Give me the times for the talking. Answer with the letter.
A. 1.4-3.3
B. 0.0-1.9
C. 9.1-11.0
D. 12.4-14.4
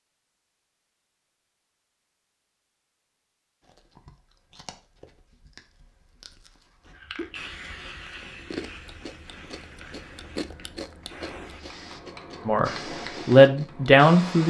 D.